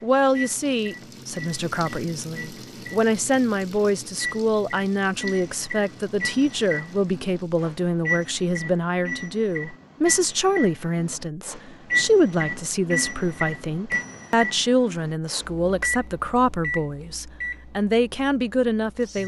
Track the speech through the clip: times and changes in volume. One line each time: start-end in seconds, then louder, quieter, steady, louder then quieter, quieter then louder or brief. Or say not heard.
0.0-19.2 steady.